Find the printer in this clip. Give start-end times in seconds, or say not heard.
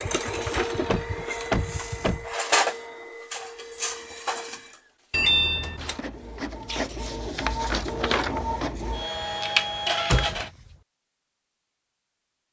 0.0-10.5.